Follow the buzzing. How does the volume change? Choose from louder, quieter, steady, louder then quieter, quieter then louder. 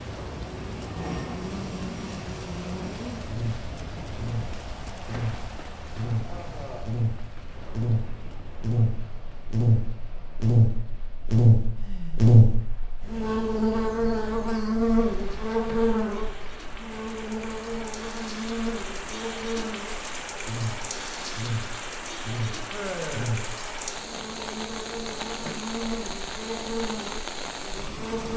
louder then quieter.